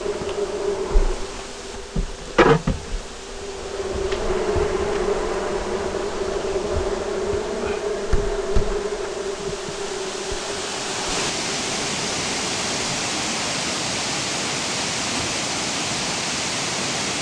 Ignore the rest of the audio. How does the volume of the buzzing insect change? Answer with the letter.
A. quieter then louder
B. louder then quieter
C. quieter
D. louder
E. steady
C.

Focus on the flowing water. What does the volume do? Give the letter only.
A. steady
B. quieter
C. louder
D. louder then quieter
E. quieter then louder
C.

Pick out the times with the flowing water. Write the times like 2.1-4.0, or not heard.
0.0-17.1.